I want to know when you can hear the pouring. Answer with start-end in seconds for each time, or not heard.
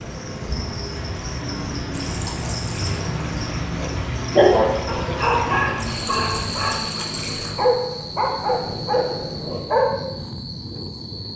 1.9-3.0, 5.8-7.5.